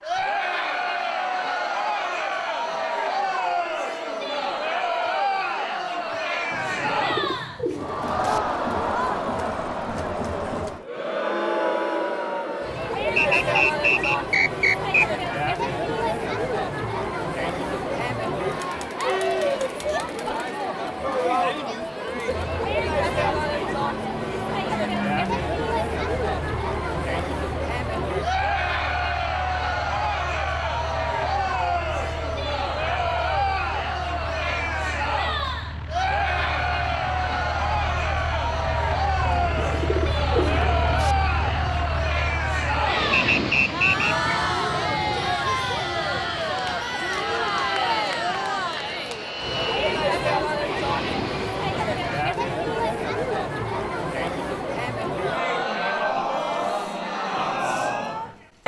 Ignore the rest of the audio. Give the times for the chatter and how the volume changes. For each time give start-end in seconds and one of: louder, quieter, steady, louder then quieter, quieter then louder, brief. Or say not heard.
0.0-58.6 steady.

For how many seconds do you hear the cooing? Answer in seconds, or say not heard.
4 s.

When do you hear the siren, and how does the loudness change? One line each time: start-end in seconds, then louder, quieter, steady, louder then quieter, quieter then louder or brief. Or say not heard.
not heard.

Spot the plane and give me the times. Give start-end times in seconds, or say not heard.
22.2-52.2.